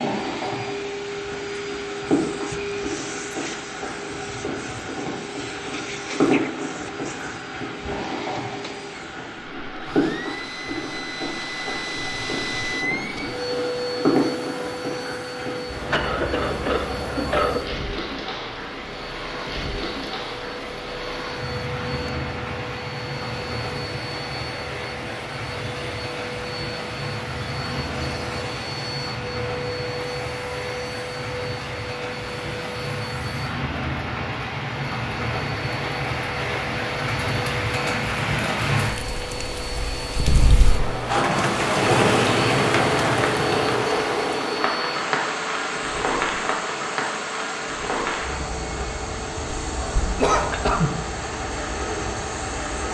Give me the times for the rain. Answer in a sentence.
The rain can be heard from 0.0 to 52.8 s.